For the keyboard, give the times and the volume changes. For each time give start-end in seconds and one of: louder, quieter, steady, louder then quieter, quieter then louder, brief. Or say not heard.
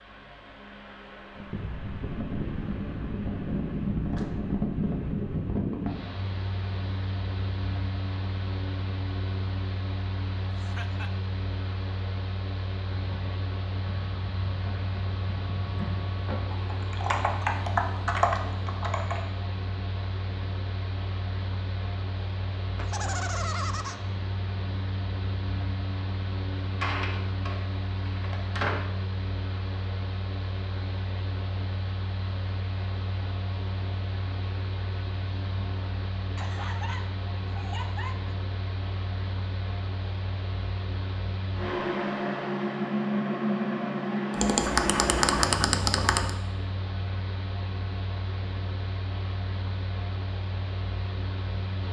12.9-19.2 louder
44.3-46.3 brief.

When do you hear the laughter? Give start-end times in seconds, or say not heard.
10.6-11.1, 22.8-24.0, 36.4-38.4.